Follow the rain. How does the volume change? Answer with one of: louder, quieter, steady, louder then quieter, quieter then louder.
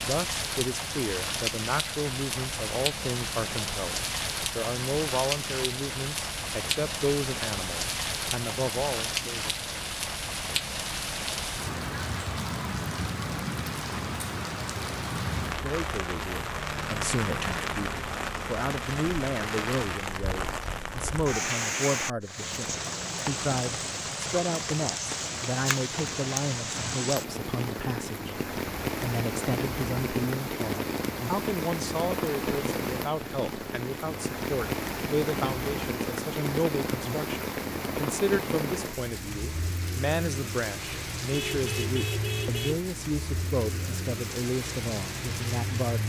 steady.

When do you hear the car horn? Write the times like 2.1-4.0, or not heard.
41.3-42.8.